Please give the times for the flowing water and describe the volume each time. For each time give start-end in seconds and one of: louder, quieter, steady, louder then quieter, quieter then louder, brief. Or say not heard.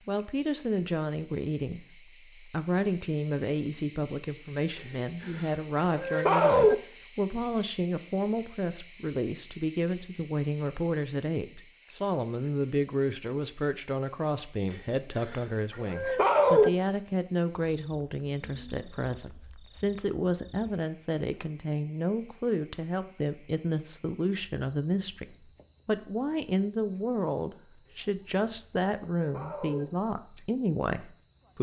not heard.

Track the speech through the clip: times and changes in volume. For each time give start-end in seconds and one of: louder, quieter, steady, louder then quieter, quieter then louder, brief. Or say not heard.
0.1-31.5 steady.